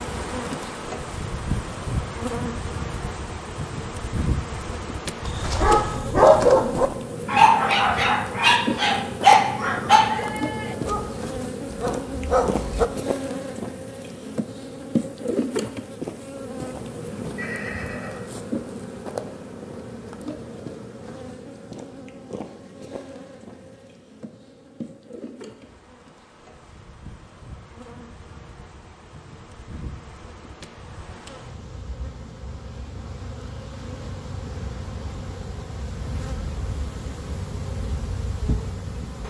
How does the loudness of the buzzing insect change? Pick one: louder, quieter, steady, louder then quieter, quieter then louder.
quieter then louder.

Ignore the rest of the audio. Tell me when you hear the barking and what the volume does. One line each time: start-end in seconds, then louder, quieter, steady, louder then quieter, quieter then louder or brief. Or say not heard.
5.2-12.8 quieter.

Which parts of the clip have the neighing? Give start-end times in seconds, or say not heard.
17.4-18.2.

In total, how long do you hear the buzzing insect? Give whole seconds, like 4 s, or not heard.
39 s.